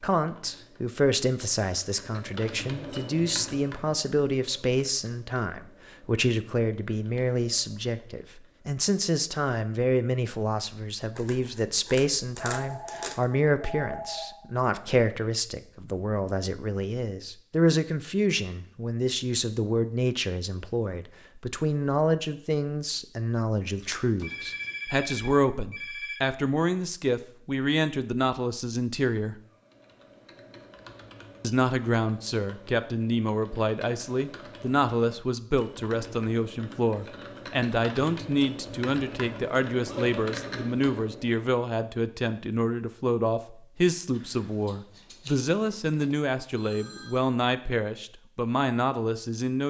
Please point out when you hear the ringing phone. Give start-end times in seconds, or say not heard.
12.5-14.3, 24.2-26.2, 46.5-47.2.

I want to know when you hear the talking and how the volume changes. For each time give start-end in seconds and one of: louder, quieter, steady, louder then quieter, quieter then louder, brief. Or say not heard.
0.0-29.4 steady
31.4-49.6 steady.